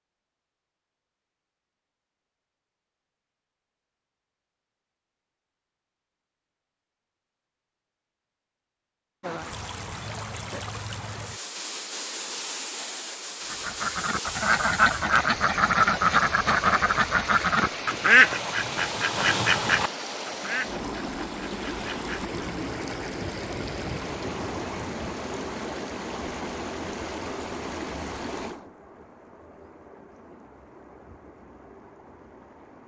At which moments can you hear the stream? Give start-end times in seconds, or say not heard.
9.2-32.8.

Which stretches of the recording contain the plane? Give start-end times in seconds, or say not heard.
not heard.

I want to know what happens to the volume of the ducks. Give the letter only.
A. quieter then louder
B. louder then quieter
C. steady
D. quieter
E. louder
D.